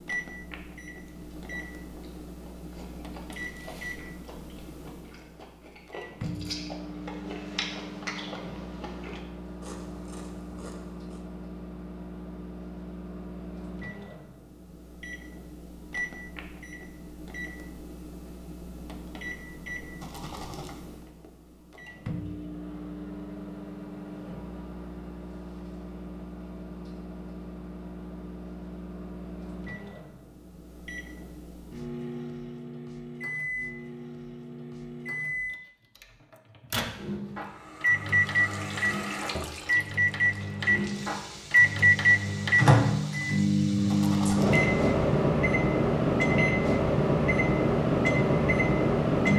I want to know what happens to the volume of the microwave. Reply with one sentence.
The volume of the microwave goes up.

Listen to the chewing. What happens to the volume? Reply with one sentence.
The loudness of the chewing goes up, then down.